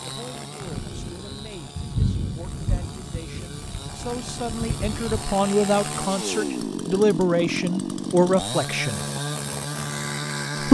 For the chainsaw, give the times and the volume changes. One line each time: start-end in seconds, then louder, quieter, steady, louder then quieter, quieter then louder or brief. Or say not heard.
0.0-10.6 louder.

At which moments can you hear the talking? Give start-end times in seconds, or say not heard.
0.0-9.1.